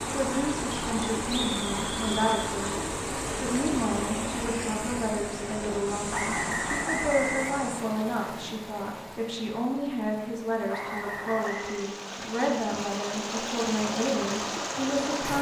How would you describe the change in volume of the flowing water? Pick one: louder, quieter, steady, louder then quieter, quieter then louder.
quieter then louder.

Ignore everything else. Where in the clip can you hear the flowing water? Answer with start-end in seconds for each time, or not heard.
0.0-15.3.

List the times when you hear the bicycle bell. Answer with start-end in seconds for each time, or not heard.
not heard.